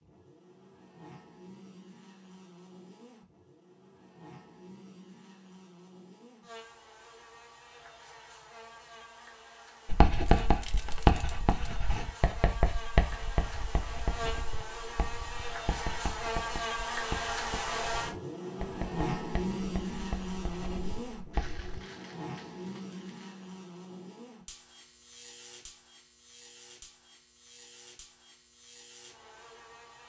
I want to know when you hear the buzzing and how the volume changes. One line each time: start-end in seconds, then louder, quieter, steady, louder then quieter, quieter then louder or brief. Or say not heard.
0.0-30.0 louder then quieter.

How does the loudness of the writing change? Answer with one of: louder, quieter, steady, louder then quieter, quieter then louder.
quieter.